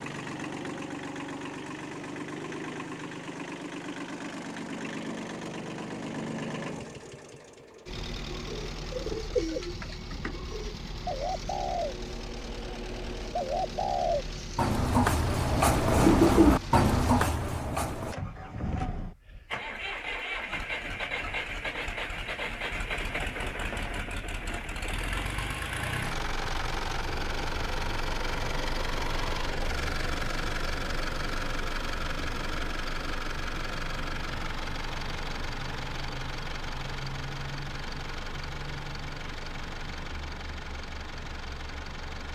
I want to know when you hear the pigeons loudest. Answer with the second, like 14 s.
16 s.